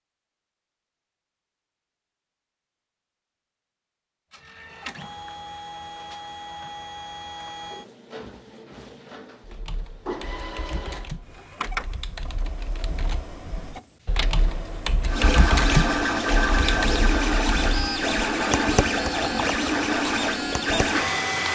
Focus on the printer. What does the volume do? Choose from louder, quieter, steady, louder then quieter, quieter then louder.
louder.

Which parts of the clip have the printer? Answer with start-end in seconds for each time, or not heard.
4.3-21.5.